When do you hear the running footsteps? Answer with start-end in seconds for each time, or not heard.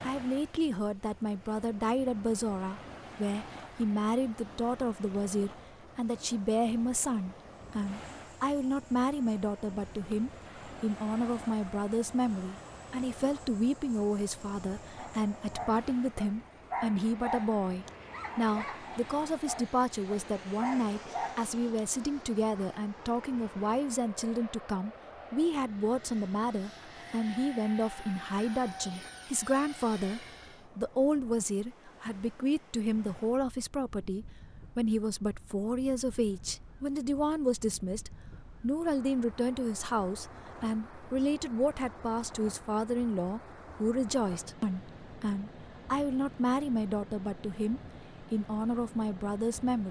not heard.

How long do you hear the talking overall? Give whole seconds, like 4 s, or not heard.
50 s.